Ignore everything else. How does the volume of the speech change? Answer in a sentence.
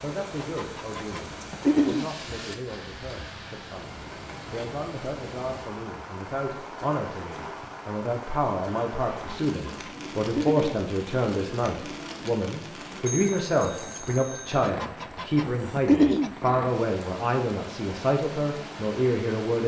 The volume of the speech goes up.